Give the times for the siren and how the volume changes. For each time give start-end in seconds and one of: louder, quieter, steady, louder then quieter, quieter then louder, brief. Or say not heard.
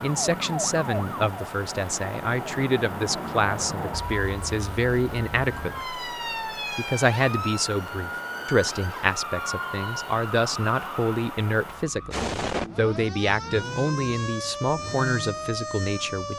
0.0-16.3 steady.